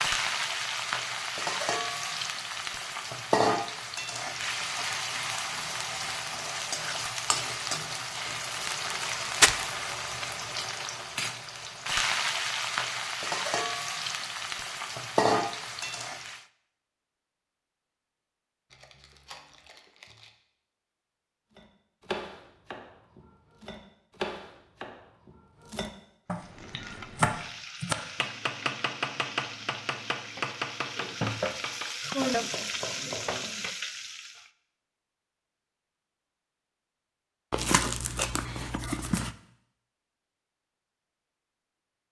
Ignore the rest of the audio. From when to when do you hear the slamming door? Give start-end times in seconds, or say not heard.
not heard.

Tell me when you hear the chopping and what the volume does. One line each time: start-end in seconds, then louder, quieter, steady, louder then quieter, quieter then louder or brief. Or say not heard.
21.6-33.5 louder then quieter.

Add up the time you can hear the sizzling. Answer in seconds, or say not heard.
25 s.